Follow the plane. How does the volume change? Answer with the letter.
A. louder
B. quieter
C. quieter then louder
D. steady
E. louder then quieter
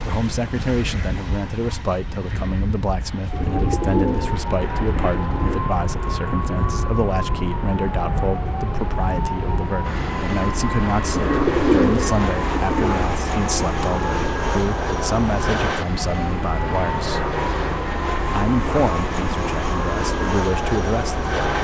A.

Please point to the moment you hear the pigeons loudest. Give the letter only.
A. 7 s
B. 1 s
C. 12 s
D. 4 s
C.